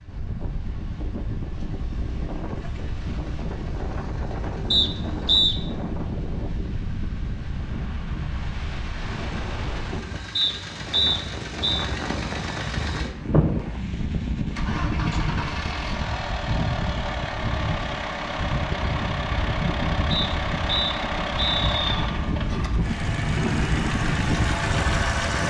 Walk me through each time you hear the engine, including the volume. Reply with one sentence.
The engine can be heard from 0.0 to 25.4 s, getting louder.